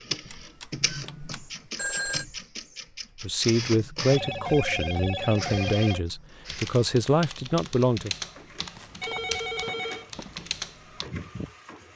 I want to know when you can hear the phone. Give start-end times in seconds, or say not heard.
0.3-2.2, 4.1-6.0, 8.8-10.4.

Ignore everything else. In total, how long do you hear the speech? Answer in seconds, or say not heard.
5 s.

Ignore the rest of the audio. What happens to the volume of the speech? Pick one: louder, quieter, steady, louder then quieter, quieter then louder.
steady.